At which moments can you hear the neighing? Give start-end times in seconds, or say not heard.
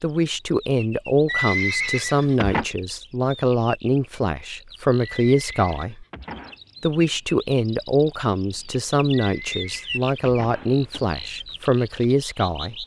1.2-2.6, 5.2-6.5, 9.1-11.1.